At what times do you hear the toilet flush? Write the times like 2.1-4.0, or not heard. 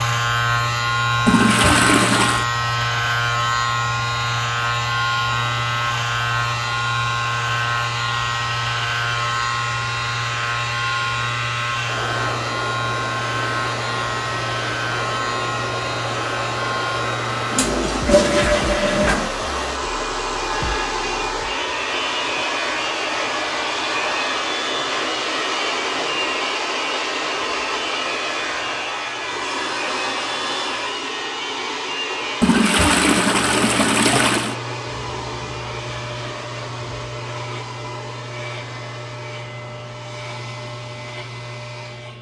1.2-2.5, 17.3-19.3, 32.4-34.5.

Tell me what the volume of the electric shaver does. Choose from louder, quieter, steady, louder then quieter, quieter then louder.
quieter.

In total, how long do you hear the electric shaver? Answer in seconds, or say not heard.
42 s.